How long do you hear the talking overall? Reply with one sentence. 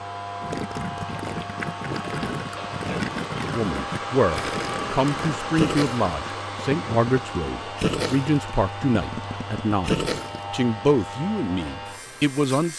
You can hear the talking for 9 seconds altogether.